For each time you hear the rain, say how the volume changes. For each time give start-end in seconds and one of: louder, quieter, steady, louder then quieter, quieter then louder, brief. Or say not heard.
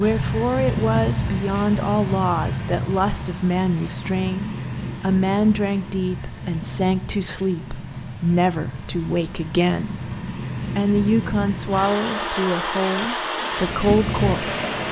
0.0-14.8 quieter then louder.